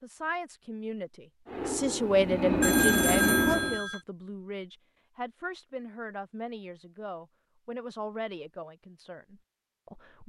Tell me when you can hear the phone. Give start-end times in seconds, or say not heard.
2.6-4.0.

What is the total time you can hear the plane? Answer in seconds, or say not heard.
2 s.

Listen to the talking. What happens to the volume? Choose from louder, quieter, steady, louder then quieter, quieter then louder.
quieter.